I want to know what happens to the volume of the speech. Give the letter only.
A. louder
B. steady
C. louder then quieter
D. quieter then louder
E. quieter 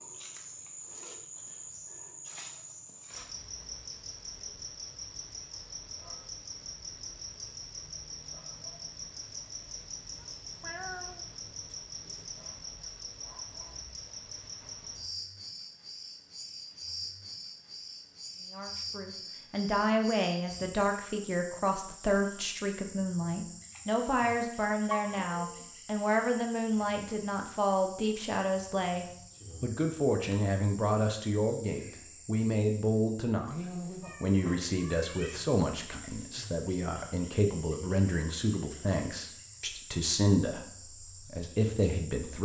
B.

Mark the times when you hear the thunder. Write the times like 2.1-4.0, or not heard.
not heard.